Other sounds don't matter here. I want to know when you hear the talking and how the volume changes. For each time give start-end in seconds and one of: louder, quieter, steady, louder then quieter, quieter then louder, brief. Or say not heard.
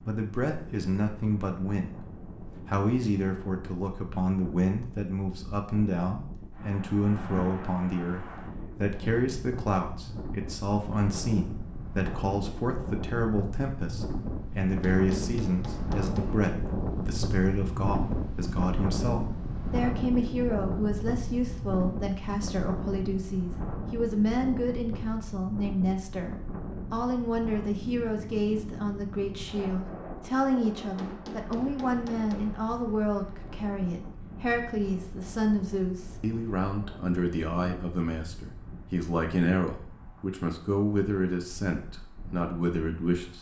0.1-43.3 steady.